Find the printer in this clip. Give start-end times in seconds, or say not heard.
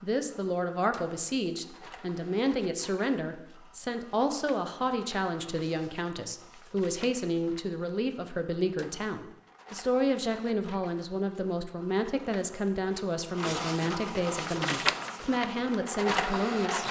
0.0-16.8.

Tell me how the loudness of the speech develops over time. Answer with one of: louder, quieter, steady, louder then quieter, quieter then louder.
steady.